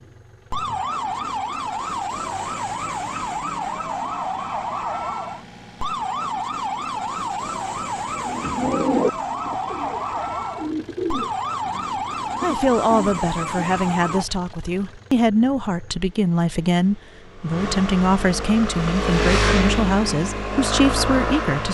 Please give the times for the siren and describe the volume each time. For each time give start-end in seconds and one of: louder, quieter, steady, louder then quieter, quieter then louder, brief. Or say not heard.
0.0-14.2 steady.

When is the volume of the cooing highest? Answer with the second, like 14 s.
9 s.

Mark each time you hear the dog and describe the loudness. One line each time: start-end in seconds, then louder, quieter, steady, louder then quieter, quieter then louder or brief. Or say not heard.
not heard.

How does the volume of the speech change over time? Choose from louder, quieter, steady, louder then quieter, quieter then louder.
steady.